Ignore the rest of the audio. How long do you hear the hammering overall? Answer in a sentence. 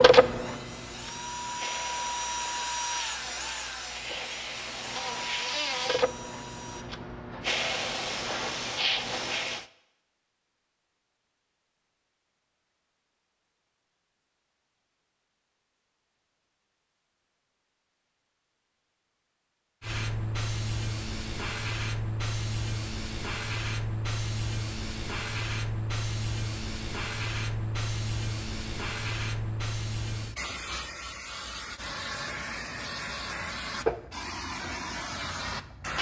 The hammering can't be heard in this clip.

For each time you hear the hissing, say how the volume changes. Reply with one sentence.
The hissing can be heard from 0.0 to 9.7 s, getting louder; and from 19.8 to 35.9 s, at a steady volume.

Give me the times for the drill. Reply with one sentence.
You can hear the drill from 0.1 to 6.8 s.